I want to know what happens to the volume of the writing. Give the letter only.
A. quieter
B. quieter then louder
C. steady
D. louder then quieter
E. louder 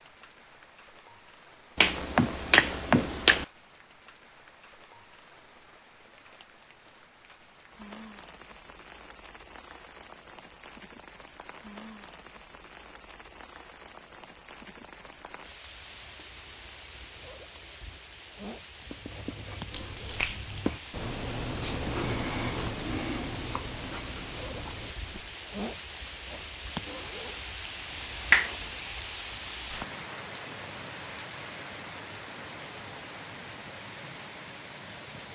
D.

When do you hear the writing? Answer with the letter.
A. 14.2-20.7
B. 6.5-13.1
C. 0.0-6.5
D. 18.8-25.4
D.